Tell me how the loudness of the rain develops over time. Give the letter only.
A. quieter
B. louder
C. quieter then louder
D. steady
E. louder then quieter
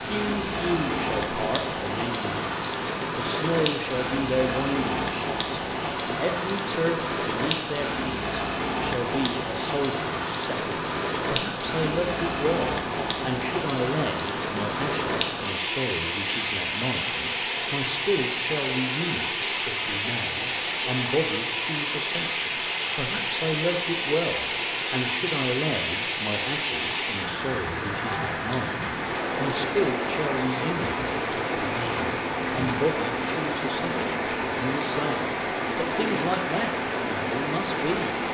D.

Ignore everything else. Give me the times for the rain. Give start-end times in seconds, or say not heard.
0.0-38.2.